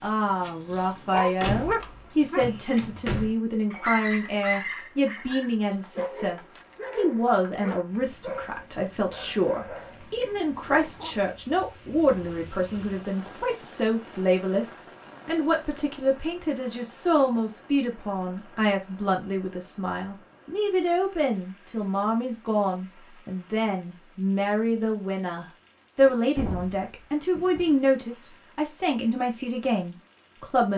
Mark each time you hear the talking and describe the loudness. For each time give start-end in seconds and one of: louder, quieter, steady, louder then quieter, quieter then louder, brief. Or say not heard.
0.0-30.7 steady.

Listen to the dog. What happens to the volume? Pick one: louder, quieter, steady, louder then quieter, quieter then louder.
quieter.